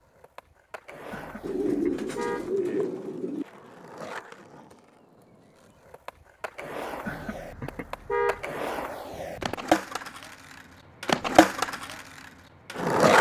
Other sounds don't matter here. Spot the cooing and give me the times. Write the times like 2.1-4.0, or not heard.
1.4-3.5.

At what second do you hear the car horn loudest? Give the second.
8 s.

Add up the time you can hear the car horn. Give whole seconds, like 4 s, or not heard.
3 s.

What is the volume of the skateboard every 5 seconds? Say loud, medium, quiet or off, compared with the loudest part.
quiet, medium, loud.